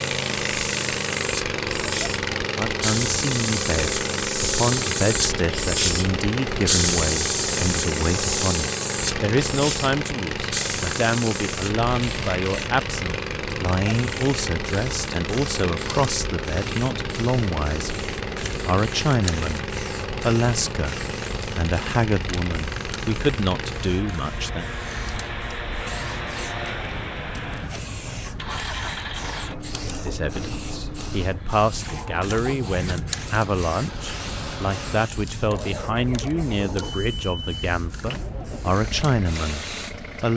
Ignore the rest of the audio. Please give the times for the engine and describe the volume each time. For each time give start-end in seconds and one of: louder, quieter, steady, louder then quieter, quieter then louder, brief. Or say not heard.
0.0-40.3 quieter.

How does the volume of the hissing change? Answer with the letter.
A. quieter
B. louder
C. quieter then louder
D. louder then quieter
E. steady
A.